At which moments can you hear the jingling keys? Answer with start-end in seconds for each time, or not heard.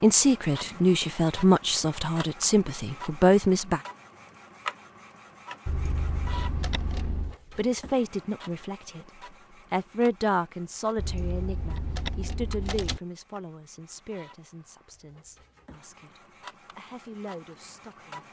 5.7-7.3, 10.9-13.0.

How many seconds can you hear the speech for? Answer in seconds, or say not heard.
14 s.